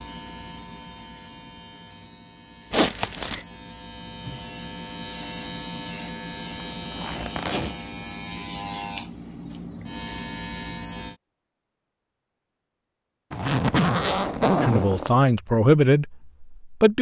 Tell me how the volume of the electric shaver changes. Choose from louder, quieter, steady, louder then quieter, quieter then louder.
louder.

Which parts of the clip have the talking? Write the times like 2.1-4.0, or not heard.
14.6-16.9.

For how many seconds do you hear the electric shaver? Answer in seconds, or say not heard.
11 s.